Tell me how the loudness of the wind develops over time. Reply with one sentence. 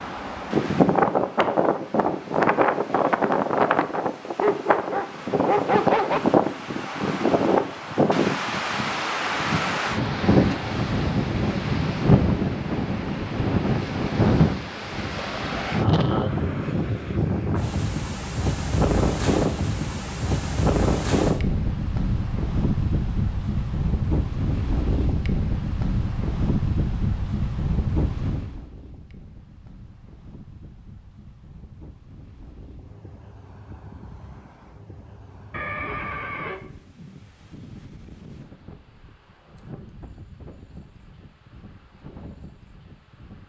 The loudness of the wind goes down.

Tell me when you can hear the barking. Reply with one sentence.
The barking can be heard from 4.4 to 6.2 s.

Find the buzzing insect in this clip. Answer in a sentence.
You can't hear the buzzing insect here.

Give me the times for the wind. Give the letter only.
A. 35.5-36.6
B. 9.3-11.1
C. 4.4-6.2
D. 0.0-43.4
D.